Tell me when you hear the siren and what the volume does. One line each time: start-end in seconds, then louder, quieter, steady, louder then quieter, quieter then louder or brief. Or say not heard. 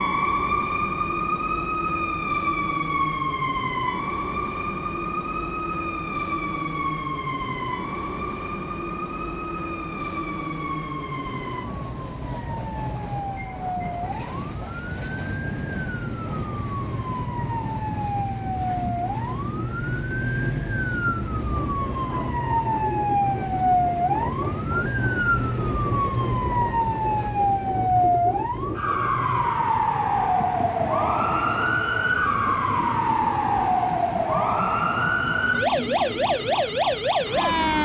0.0-37.7 quieter then louder.